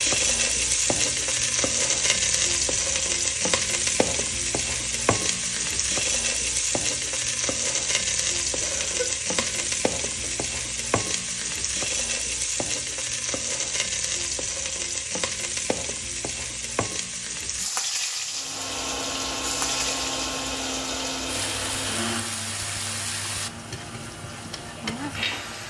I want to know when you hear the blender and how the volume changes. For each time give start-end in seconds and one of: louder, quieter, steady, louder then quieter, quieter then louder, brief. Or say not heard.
18.3-25.6 quieter.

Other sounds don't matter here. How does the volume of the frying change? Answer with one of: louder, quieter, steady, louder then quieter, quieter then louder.
quieter.